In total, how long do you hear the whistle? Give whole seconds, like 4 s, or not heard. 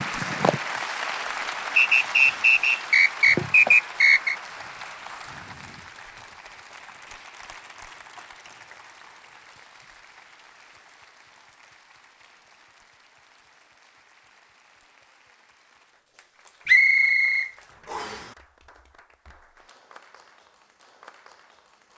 4 s.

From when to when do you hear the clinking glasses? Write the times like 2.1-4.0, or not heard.
not heard.